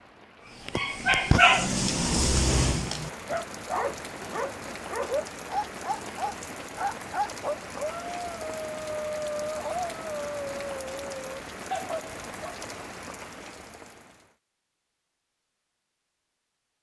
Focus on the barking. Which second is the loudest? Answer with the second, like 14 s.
1 s.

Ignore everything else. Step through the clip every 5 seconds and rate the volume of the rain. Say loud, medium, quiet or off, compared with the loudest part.
loud, loud, loud, off.